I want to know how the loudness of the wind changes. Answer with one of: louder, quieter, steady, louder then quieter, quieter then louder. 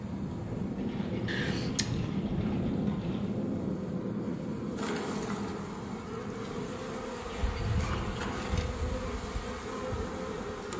quieter.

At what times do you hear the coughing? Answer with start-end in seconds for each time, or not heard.
1.2-2.1.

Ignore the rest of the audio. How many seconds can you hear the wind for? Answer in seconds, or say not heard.
11 s.